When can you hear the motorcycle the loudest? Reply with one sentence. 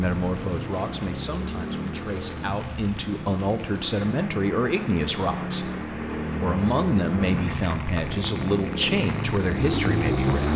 The volume of the motorcycle peaks at 10 seconds.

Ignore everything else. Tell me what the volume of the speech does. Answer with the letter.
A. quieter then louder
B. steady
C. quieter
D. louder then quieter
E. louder
E.